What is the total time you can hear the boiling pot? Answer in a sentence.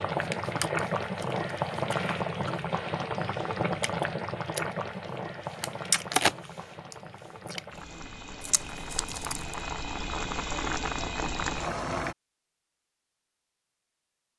The boiling pot can be heard for 12 seconds in total.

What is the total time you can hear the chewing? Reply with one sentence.
You can hear the chewing for 8 seconds altogether.